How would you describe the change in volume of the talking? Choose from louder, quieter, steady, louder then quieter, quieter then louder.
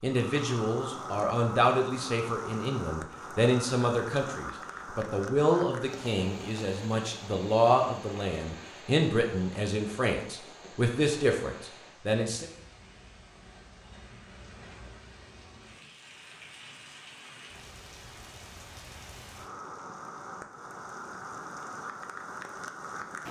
steady.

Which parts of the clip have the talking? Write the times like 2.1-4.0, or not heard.
0.0-12.5.